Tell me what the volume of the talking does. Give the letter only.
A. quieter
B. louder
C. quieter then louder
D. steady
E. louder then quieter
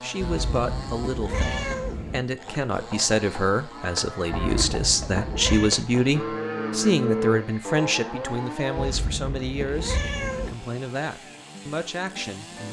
E.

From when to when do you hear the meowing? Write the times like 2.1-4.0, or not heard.
0.2-2.2, 4.3-5.8, 8.8-10.6.